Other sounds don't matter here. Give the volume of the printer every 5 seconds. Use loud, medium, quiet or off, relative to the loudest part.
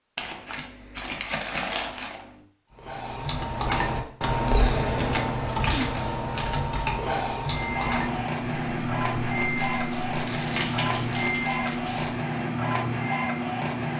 off, loud, loud.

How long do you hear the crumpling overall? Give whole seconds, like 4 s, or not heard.
6 s.